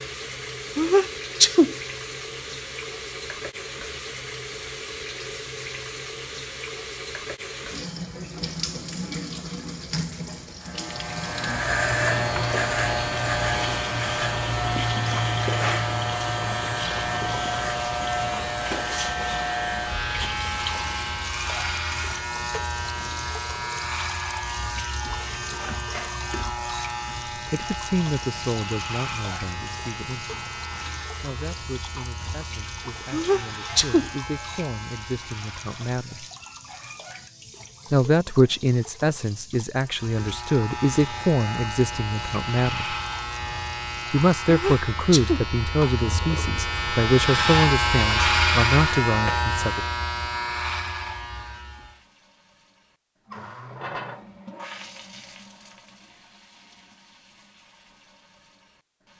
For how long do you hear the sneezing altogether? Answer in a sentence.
The sneezing can be heard for 3 seconds in total.